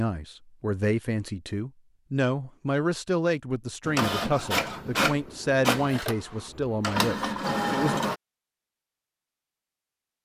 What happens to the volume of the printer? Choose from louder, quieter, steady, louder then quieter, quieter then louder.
steady.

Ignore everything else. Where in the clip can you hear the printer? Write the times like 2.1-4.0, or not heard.
3.9-8.2.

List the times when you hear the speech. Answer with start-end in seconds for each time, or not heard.
0.0-8.0.